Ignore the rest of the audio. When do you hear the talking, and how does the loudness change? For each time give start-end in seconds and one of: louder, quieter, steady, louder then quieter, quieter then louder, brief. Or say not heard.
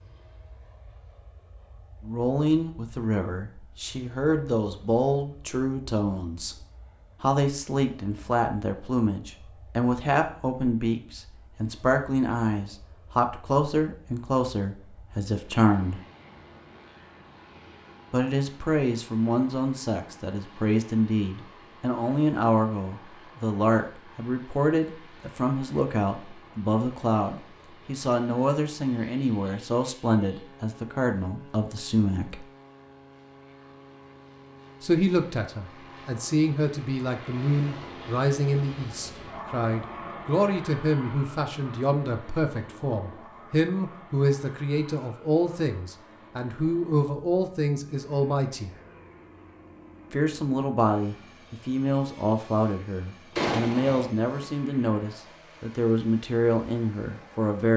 2.0-6.5 quieter then louder
7.2-16.0 steady
18.1-32.5 steady
34.8-48.7 steady
50.1-57.7 steady.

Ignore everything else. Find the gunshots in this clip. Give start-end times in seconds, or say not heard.
53.4-54.5.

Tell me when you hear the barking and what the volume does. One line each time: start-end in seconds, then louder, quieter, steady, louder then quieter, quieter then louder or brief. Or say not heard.
not heard.